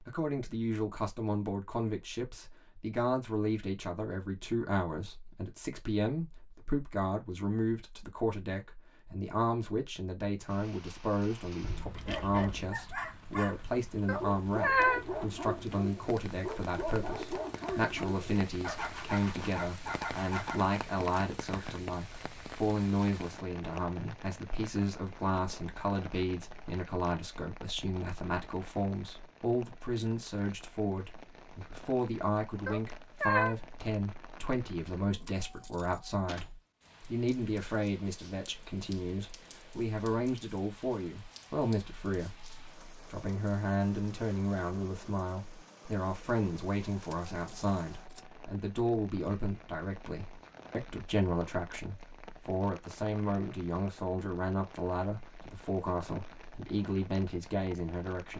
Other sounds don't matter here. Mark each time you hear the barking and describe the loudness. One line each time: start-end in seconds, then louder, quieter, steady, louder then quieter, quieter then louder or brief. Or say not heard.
12.1-20.6 steady.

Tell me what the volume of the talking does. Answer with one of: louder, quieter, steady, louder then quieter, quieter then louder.
steady.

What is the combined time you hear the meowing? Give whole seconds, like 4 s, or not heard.
2 s.